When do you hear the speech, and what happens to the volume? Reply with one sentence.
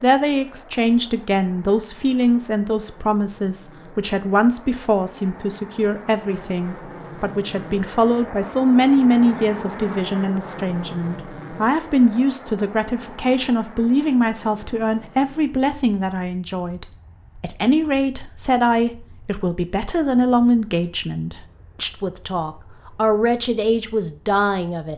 You can hear the speech from 0.0 to 24.9 s, at a steady volume.